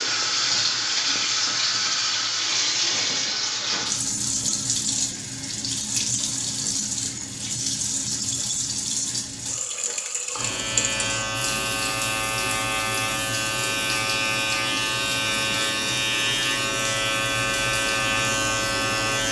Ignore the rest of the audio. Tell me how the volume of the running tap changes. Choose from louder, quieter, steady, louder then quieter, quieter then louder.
quieter.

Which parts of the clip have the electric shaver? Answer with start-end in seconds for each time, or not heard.
10.3-19.2.